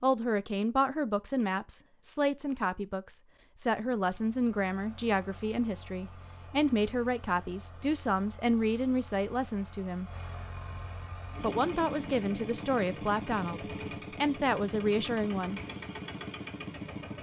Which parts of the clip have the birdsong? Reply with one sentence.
The birdsong can't be heard in this clip.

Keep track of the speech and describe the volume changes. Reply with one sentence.
The volume of the speech stays about the same.